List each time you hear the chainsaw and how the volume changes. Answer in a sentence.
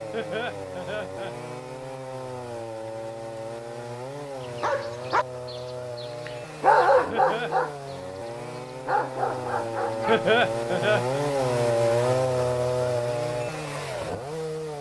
The chainsaw can be heard from 0.0 to 14.7 s, getting louder.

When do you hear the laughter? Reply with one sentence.
The laughter can be heard from 0.1 to 1.4 s, from 7.1 to 7.5 s and from 10.1 to 11.2 s.